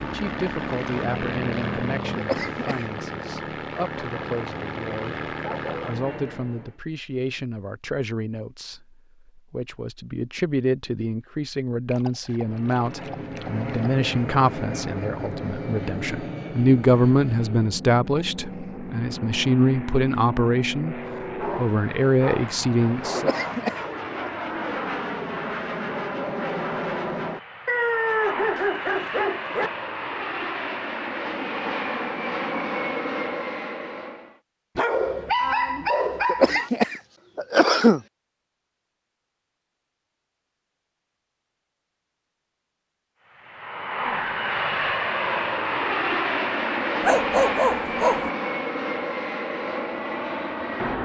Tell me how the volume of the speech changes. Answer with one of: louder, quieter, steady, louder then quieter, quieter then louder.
louder.